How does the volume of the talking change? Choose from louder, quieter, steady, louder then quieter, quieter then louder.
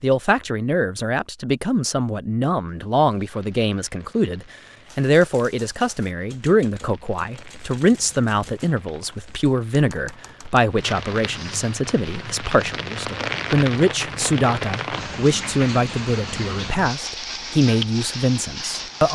steady.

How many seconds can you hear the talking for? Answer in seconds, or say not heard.
19 s.